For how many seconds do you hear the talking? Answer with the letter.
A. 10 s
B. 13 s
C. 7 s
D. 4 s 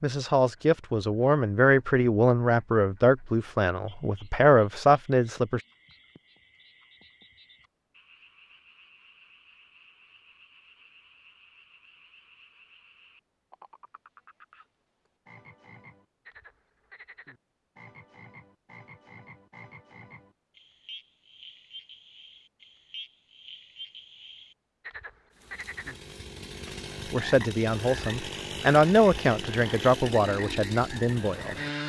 A.